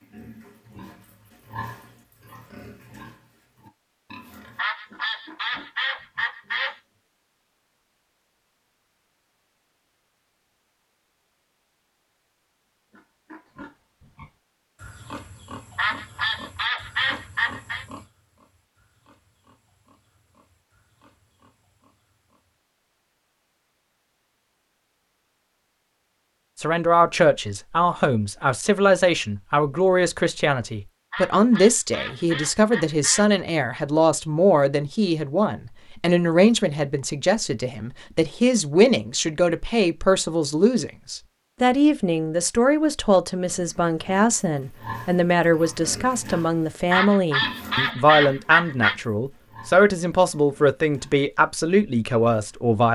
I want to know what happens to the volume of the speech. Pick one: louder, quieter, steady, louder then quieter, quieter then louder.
steady.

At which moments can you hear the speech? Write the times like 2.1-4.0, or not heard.
26.6-52.9.